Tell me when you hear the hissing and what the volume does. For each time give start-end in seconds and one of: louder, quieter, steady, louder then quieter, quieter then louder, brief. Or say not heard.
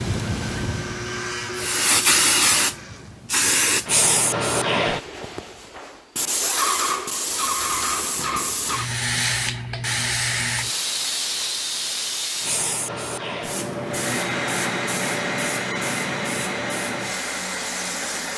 0.0-18.3 quieter.